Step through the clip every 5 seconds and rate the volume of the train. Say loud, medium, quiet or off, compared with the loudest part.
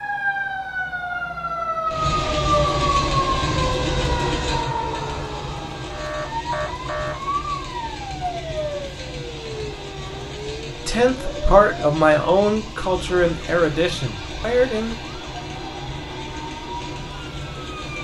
loud, medium, medium, medium.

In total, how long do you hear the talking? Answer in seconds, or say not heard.
4 s.